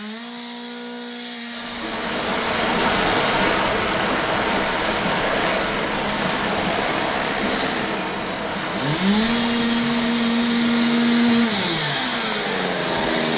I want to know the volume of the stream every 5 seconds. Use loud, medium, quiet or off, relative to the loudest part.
loud, loud, medium.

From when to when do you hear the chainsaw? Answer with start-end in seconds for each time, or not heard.
0.0-13.3.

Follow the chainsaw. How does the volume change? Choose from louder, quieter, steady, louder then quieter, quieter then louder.
louder.